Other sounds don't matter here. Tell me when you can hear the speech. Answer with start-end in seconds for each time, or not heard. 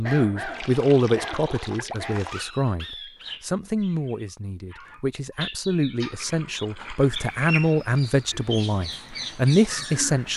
0.0-10.3.